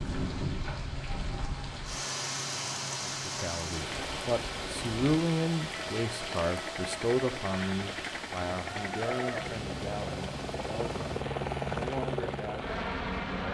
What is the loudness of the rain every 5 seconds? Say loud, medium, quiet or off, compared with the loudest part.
loud, loud, medium.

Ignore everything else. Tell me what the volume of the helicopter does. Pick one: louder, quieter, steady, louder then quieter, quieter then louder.
louder.